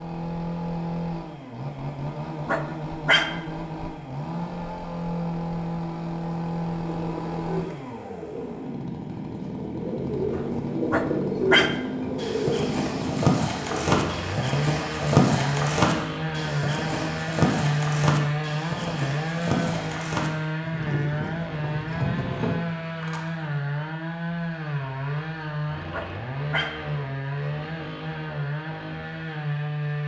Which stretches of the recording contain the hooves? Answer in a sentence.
The hooves can be heard from 11.8 to 23.3 s.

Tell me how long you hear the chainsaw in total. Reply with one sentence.
The chainsaw can be heard for 30 seconds in total.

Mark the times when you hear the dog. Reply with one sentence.
The dog can be heard from 2.5 to 3.4 s, from 10.9 to 11.8 s and from 25.9 to 26.8 s.